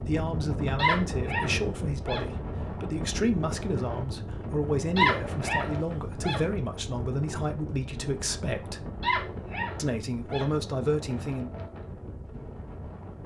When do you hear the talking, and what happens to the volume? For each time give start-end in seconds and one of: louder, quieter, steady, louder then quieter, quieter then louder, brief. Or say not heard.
0.0-8.8 steady
9.8-11.5 brief.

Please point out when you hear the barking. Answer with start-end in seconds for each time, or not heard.
0.8-2.2, 5.0-6.5, 9.0-10.5.